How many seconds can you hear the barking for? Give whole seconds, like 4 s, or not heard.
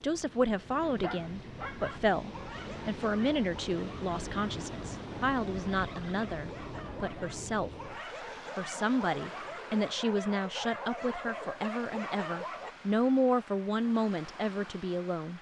12 s.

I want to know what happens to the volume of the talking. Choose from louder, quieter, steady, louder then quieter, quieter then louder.
steady.